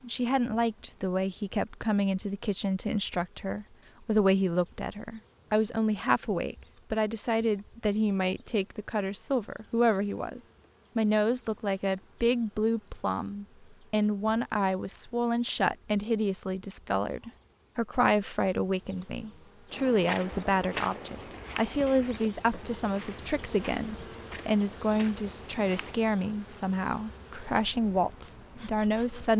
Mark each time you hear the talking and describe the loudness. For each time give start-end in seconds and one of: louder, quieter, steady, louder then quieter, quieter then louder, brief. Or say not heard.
0.0-29.3 steady.